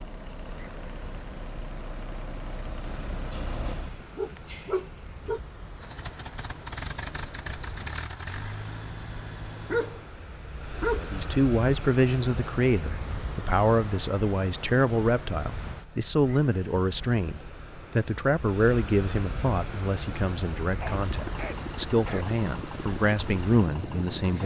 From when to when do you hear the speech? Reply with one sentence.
You can hear the speech from 10.9 to 24.4 s.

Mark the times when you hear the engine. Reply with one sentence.
The engine can be heard from 0.0 to 4.0 s, from 5.8 to 10.2 s and from 21.0 to 24.4 s.